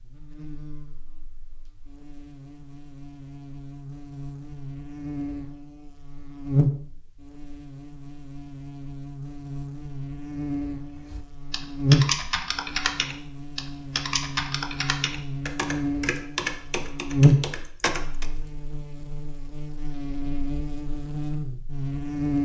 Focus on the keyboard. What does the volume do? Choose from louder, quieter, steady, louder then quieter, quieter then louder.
quieter.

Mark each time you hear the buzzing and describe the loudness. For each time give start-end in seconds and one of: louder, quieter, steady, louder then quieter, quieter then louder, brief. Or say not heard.
0.0-22.4 louder then quieter.